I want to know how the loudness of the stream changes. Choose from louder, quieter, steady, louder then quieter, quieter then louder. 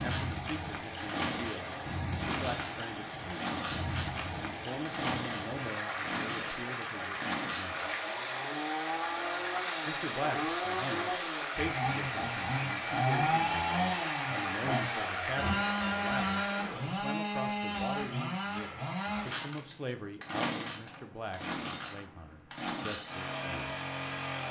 steady.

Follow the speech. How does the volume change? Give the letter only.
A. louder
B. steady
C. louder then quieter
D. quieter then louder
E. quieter
B.